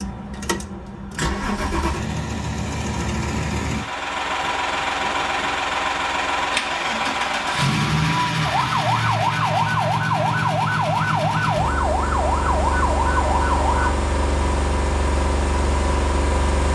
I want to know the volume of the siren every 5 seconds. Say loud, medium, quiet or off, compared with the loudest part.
off, loud, loud, off.